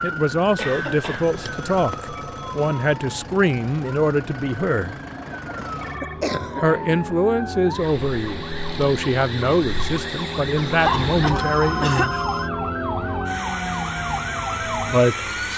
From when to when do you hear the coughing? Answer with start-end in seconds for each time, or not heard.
0.6-1.9, 5.8-7.0, 10.8-12.1.